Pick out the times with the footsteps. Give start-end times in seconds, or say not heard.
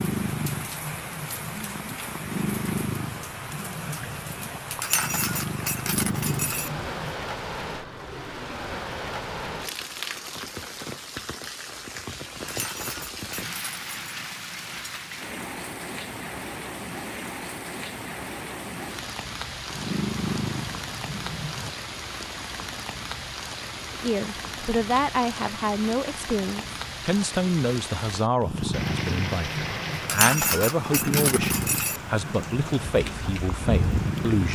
not heard.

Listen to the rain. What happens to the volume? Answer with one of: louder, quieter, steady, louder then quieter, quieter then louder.
steady.